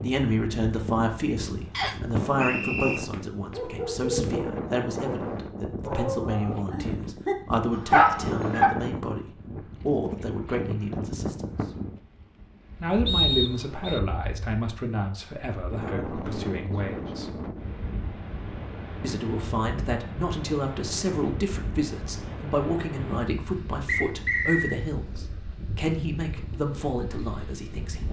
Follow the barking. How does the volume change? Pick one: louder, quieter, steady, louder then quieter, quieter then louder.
quieter then louder.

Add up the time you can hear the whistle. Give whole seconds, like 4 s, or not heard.
3 s.